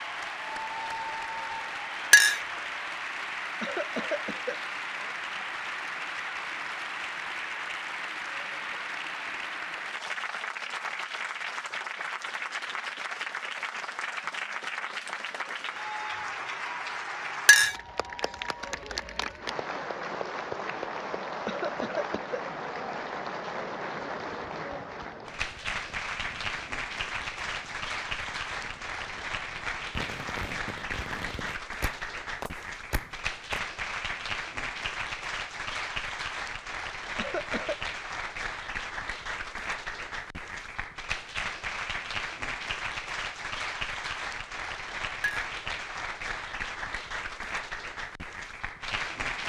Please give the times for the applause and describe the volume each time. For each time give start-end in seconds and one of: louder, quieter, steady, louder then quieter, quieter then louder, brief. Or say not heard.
0.0-49.4 steady.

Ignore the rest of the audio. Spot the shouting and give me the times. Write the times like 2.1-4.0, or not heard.
not heard.